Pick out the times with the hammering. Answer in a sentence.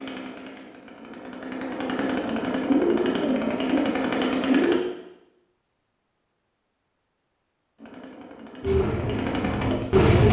The hammering can't be heard in this clip.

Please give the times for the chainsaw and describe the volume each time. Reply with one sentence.
You can hear the chainsaw from 0.0 to 4.8 s, getting louder; and briefly from 7.8 to 10.1 s.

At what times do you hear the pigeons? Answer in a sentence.
You can hear the pigeons from 2.6 to 4.8 s and from 8.7 to 10.2 s.